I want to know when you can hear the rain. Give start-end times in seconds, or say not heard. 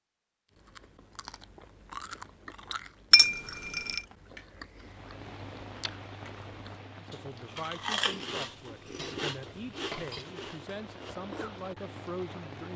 4.8-12.7.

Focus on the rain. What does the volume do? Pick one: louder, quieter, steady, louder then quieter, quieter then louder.
quieter then louder.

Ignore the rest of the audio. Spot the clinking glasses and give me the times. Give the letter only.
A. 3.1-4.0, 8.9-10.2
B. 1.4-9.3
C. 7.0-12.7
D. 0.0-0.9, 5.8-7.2
A.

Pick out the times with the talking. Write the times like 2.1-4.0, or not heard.
7.0-12.7.